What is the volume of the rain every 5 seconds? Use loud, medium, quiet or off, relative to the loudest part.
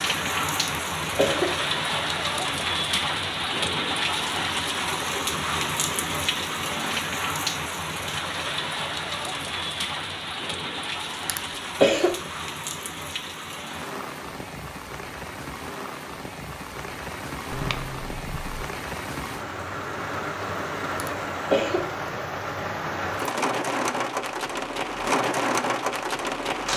loud, loud, medium, medium, loud, loud.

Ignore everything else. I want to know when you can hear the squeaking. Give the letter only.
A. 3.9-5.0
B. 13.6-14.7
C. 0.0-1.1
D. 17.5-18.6
D.